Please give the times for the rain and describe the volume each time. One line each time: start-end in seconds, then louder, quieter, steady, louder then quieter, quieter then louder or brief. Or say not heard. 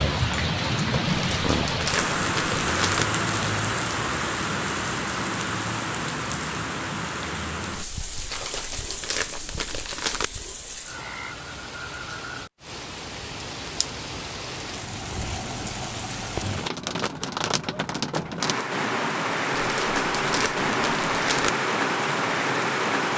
0.0-23.1 quieter then louder.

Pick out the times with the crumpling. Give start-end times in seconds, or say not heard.
1.1-3.0, 8.3-10.3, 19.5-21.5.